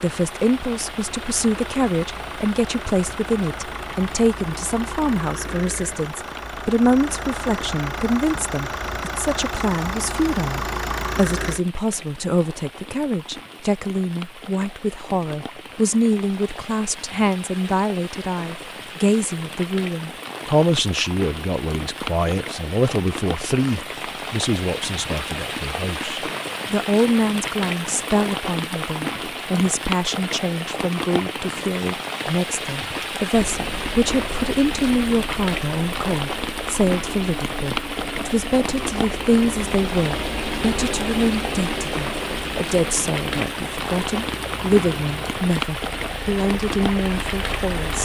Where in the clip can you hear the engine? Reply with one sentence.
You can hear the engine from 0.0 to 11.6 s and from 33.3 to 47.9 s.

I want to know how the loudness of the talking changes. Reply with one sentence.
The loudness of the talking stays about the same.